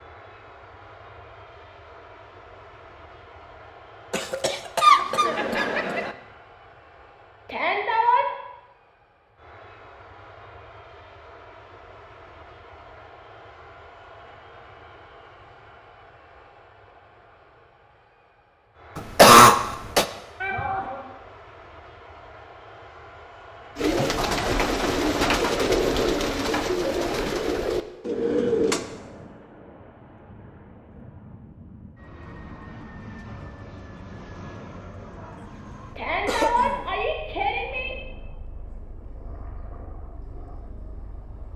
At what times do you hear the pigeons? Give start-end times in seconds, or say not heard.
23.8-28.9.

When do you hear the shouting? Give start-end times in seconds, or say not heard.
7.5-8.3, 20.4-21.1, 36.0-38.0.